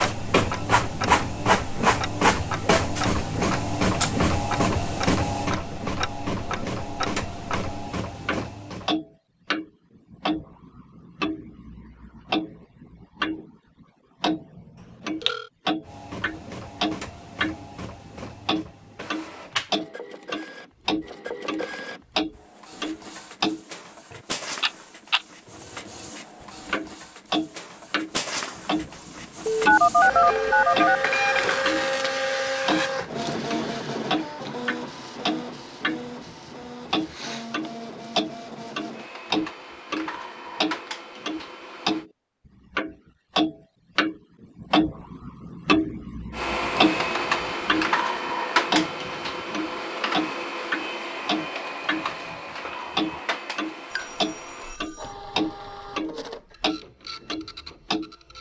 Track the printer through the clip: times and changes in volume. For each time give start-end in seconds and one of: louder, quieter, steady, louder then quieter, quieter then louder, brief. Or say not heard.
0.0-8.9 quieter
15.8-42.0 louder then quieter
46.3-58.3 quieter.